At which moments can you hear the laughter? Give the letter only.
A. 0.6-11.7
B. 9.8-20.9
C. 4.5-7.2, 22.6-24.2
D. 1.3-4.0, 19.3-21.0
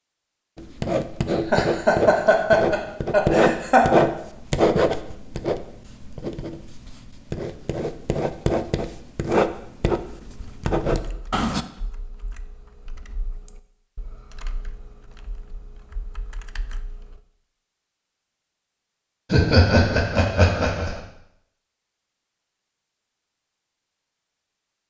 D.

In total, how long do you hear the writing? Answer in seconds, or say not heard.
11 s.